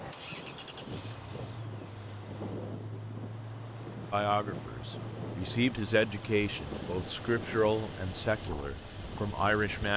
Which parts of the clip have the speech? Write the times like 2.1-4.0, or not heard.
4.1-9.9.